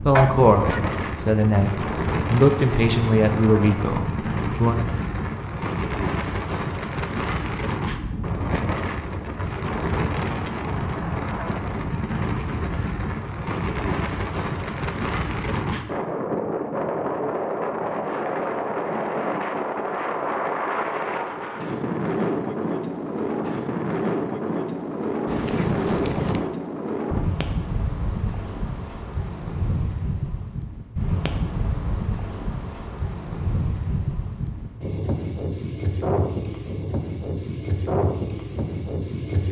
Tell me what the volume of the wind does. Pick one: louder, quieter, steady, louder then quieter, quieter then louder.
steady.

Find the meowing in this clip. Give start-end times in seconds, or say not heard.
0.1-0.8, 25.2-26.4.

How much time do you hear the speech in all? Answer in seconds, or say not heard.
5 s.